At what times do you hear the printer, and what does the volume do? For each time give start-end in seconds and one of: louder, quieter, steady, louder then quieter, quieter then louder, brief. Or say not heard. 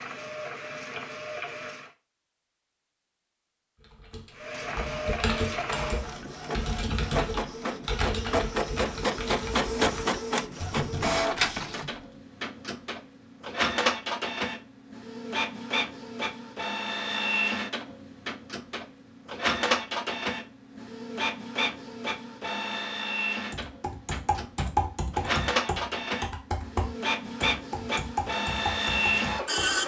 0.0-1.9 brief
4.3-29.8 steady.